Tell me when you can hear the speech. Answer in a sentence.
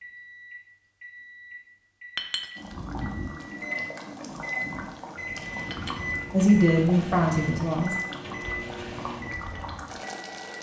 The speech can be heard from 6.3 to 8.0 s.